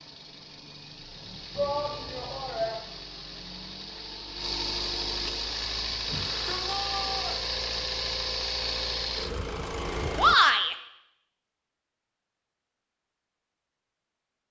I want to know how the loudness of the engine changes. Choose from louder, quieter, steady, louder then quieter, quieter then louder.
louder.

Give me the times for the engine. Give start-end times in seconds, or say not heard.
0.0-10.3.